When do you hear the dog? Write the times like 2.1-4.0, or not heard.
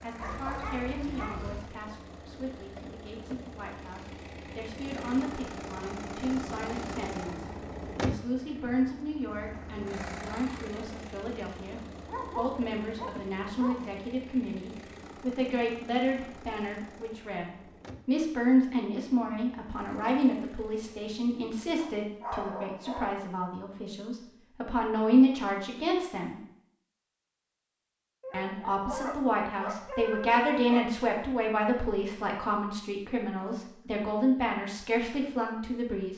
0.1-1.7, 12.1-13.8, 21.8-23.2, 28.2-30.9.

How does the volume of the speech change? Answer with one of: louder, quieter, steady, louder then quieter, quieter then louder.
louder.